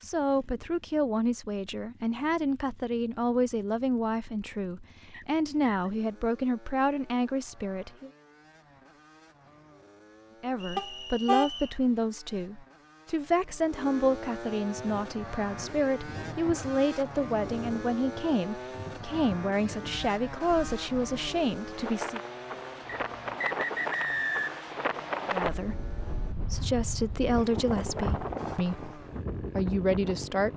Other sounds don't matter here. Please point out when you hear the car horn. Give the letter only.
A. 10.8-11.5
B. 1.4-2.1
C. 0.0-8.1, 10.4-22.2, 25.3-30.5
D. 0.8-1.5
A.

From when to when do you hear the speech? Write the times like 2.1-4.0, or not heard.
0.0-8.1, 10.4-22.2, 25.3-30.5.